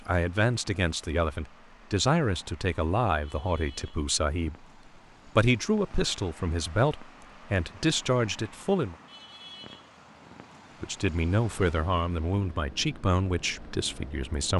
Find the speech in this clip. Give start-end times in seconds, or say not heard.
0.0-4.7, 5.2-8.9, 10.8-14.5.